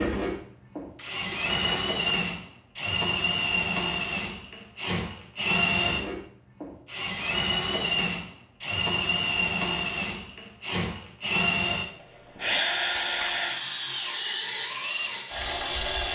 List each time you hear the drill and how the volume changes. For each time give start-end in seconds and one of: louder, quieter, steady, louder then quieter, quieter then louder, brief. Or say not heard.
0.0-16.1 steady.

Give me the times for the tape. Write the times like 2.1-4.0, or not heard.
0.9-2.2, 12.9-13.3.